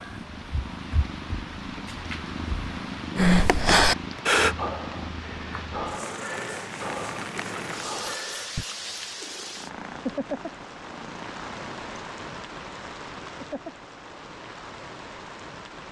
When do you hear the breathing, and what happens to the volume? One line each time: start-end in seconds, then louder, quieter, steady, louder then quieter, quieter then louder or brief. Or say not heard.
3.1-8.7 quieter.